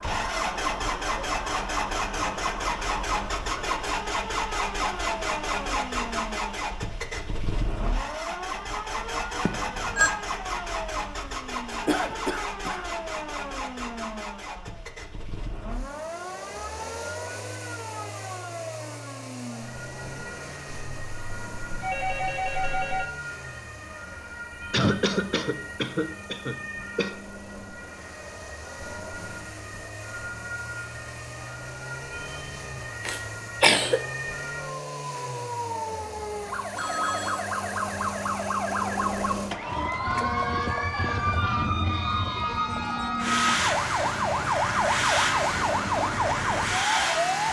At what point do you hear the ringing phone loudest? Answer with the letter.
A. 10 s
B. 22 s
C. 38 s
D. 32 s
A.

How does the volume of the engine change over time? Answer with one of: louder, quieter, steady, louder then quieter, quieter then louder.
quieter then louder.